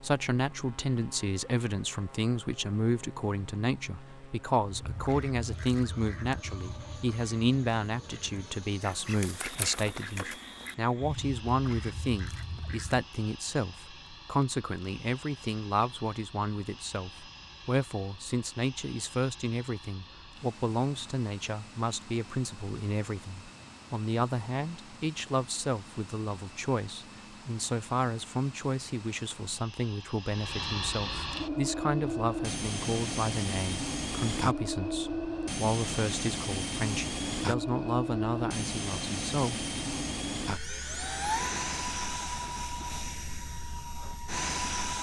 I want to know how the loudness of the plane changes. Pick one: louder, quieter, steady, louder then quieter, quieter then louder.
louder.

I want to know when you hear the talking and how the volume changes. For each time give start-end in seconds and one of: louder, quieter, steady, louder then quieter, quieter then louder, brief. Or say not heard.
0.0-39.6 steady.